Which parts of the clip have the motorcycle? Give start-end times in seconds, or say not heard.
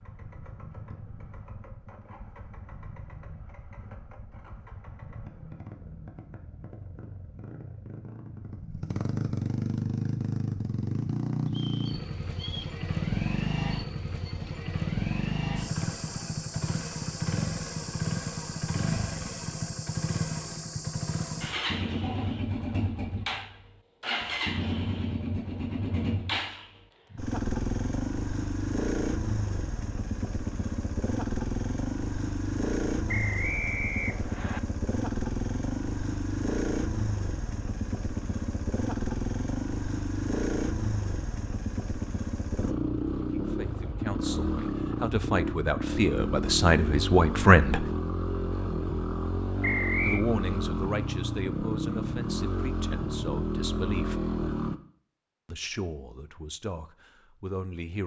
0.0-54.8.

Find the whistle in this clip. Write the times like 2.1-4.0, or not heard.
11.4-12.8, 33.0-34.6, 49.6-50.2.